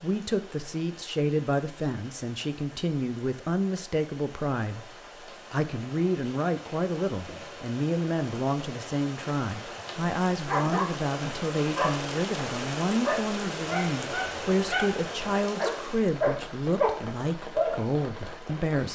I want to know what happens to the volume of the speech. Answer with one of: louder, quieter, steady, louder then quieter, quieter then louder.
steady.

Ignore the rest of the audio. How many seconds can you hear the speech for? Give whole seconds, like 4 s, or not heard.
18 s.